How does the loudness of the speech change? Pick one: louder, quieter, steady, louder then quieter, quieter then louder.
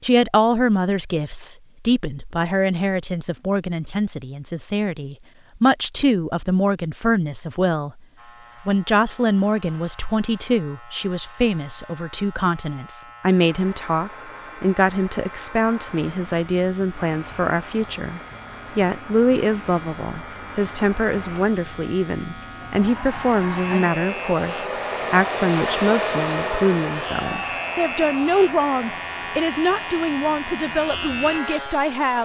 steady.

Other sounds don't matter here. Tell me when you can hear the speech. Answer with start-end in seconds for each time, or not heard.
0.0-8.0, 8.7-32.1.